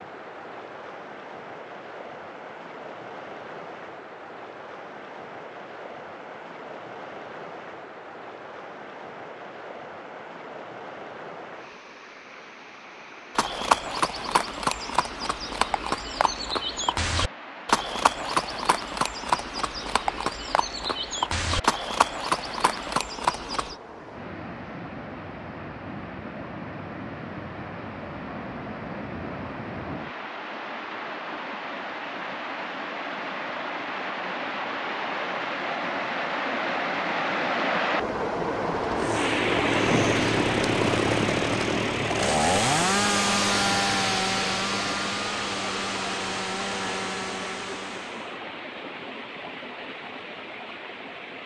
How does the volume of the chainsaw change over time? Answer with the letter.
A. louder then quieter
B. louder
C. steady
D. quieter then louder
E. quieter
E.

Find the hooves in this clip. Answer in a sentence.
You can hear the hooves from 13.3 to 23.8 s.